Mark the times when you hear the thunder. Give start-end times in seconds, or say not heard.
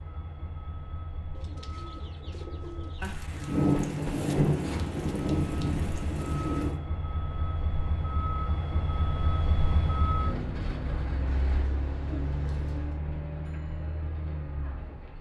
3.0-6.8.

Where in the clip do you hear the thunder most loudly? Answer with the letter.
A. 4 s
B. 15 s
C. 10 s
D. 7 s
A.